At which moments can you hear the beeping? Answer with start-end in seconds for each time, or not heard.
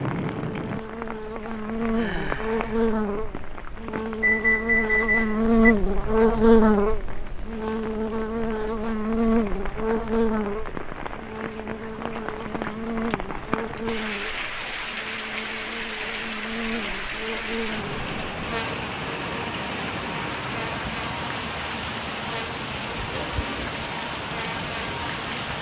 4.2-5.6.